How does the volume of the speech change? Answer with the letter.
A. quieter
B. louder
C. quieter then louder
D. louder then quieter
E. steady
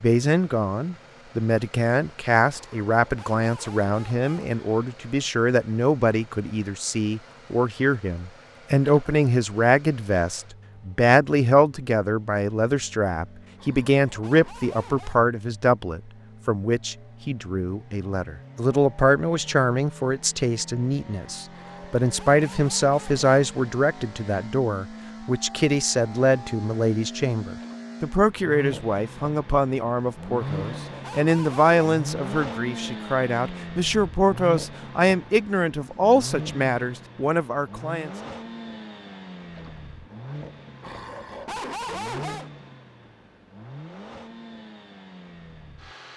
E.